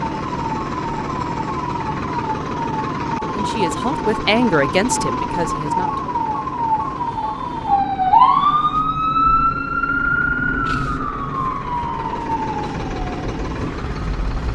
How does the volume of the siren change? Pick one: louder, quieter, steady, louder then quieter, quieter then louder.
louder then quieter.